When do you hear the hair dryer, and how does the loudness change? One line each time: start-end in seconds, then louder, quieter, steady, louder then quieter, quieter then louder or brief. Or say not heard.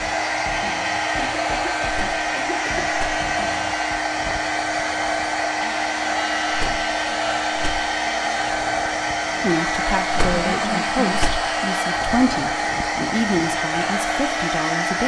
0.0-15.0 steady.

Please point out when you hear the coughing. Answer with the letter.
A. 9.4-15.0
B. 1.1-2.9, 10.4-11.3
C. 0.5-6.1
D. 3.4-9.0
B.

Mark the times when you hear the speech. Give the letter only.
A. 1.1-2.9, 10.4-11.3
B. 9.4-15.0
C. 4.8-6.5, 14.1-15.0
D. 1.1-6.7
B.